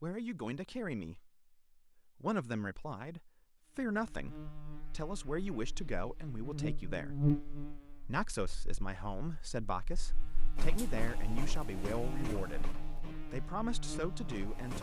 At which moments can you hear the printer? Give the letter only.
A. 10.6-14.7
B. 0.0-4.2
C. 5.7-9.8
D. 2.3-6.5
A.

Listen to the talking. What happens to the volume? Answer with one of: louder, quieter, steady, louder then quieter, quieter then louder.
steady.